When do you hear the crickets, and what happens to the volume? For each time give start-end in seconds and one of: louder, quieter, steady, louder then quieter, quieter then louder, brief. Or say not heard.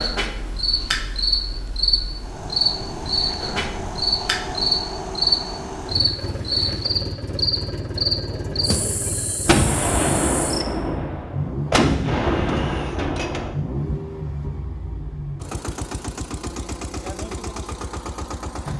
0.0-10.7 quieter.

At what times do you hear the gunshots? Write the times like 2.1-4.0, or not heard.
9.4-13.6.